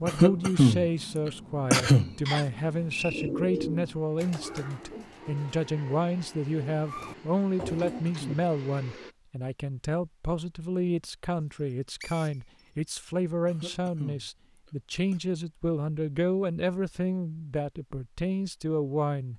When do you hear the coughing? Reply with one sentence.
The coughing can be heard from 0.1 to 2.1 s, from 7.7 to 8.4 s and from 13.4 to 15.2 s.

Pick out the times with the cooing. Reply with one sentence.
You can hear the cooing from 3.1 to 8.3 s.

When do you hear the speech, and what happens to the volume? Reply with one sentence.
You can hear the speech from 0.0 to 19.3 s, at a steady volume.